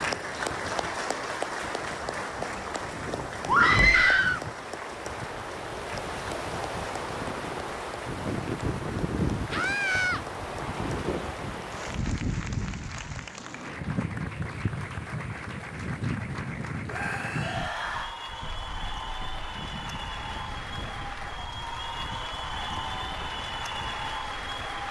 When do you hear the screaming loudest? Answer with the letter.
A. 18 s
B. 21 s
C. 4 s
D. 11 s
C.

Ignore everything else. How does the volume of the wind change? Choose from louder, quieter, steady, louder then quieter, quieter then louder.
louder then quieter.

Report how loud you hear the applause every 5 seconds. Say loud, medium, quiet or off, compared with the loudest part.
loud, medium, medium, medium, loud.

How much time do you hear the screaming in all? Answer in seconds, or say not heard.
3 s.